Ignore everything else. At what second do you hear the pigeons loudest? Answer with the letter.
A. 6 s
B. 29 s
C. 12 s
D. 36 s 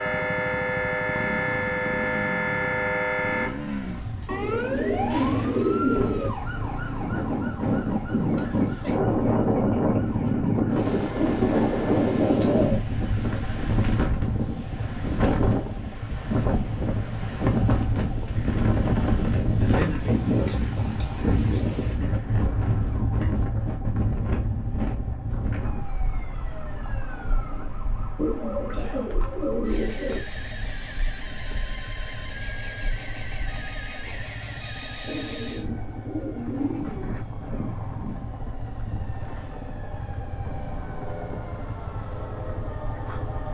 A.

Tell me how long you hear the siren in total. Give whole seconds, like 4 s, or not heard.
30 s.